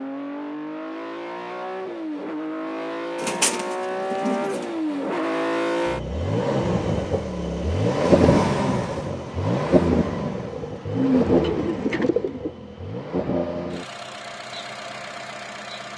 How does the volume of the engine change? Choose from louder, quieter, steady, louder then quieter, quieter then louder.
louder then quieter.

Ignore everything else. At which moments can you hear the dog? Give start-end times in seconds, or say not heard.
not heard.